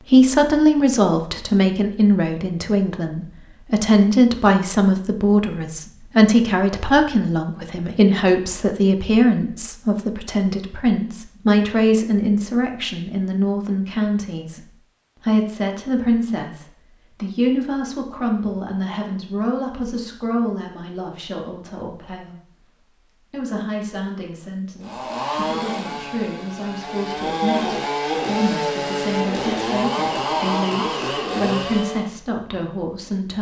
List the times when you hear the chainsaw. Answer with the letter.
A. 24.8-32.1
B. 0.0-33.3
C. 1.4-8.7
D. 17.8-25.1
A.